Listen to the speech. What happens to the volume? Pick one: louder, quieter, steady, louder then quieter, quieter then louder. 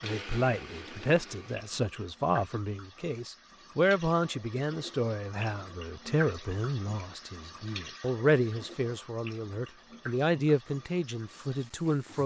steady.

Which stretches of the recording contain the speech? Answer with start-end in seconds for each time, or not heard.
0.0-12.2.